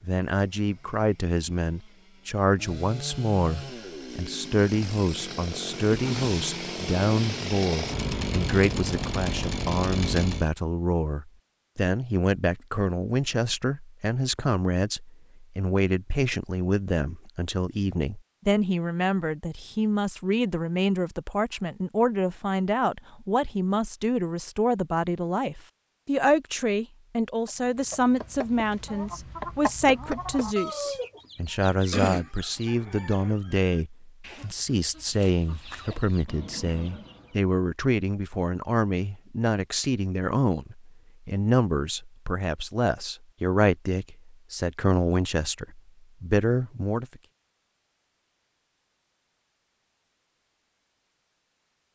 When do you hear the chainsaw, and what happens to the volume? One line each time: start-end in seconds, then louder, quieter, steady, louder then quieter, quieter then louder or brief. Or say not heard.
0.2-10.5 louder.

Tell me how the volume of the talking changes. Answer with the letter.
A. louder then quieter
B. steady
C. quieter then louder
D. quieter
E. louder
B.